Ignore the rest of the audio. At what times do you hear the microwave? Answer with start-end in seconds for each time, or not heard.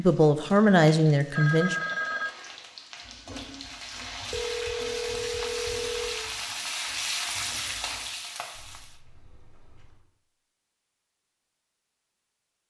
not heard.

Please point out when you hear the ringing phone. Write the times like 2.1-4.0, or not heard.
1.3-2.4, 4.3-6.2, 8.6-10.1.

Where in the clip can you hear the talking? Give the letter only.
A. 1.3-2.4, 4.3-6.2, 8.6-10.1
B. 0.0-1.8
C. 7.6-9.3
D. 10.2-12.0
B.